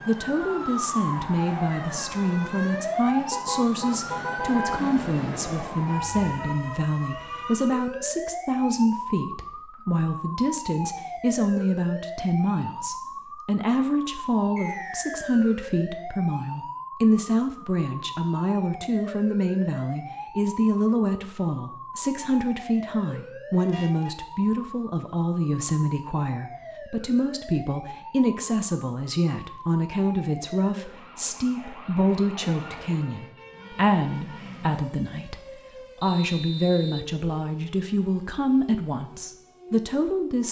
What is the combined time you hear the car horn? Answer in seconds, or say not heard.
4 s.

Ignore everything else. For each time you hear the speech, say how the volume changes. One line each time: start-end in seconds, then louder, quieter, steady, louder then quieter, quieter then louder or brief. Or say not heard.
0.1-40.4 steady.